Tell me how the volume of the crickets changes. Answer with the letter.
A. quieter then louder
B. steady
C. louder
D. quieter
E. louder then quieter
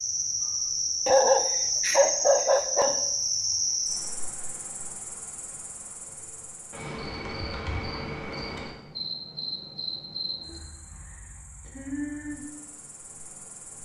D.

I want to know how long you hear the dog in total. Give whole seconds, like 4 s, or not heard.
2 s.